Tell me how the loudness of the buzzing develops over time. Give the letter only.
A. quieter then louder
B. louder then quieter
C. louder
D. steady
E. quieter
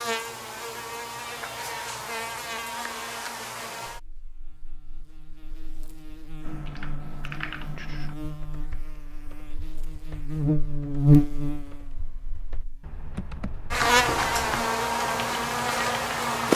A.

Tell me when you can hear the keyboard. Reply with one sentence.
You can hear the keyboard from 6.4 to 16.0 s.